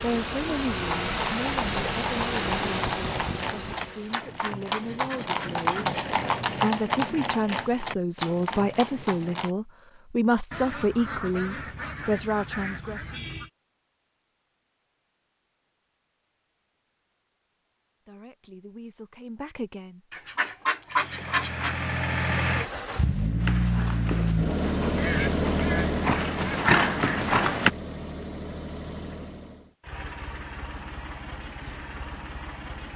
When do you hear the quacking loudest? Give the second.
21 s.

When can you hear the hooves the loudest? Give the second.
27 s.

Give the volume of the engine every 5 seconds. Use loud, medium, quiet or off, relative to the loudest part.
loud, off, off, off, loud, loud, quiet.